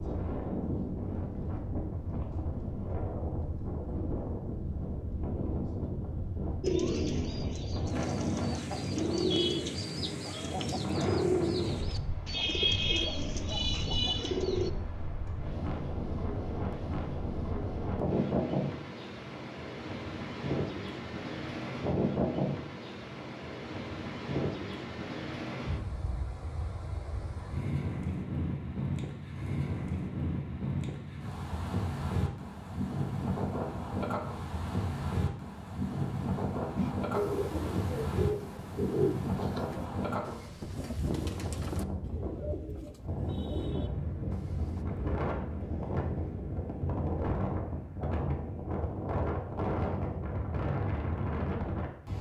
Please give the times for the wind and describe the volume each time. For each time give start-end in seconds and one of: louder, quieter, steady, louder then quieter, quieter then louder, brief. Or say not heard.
0.0-52.1 steady.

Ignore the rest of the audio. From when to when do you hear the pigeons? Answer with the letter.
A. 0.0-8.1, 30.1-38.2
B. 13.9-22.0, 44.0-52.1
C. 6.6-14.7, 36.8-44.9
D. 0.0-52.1
C.